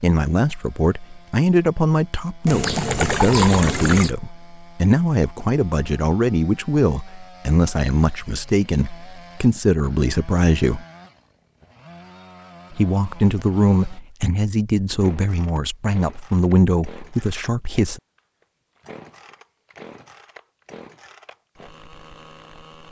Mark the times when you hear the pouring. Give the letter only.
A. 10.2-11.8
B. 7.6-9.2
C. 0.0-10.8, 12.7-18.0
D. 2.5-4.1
D.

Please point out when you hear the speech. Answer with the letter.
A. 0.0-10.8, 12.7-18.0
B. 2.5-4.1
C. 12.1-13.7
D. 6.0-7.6
A.